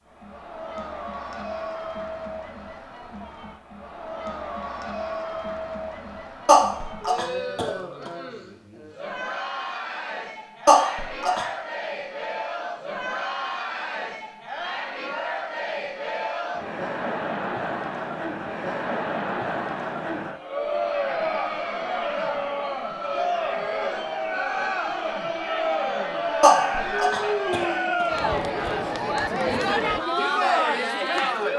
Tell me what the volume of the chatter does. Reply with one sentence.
The loudness of the chatter goes up.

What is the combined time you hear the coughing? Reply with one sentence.
The coughing can be heard for 4 seconds in total.